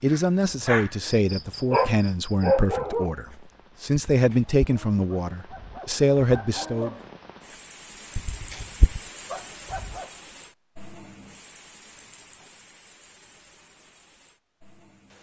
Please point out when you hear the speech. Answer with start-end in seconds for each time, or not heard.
0.0-7.0.